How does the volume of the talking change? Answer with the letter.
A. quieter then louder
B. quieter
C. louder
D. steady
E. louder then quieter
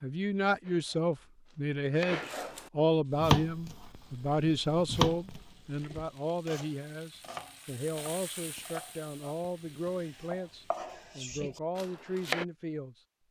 B.